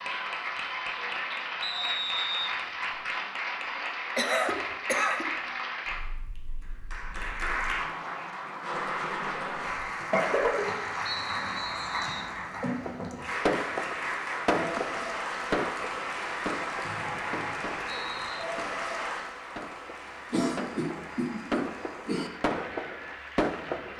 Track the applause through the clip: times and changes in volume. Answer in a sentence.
The applause can be heard from 0.0 to 23.9 s, getting quieter.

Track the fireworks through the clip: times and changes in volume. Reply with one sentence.
You can hear the fireworks from 12.8 to 23.9 s, getting quieter then louder.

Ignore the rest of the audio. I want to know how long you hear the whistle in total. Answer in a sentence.
The whistle can be heard for 4 seconds in total.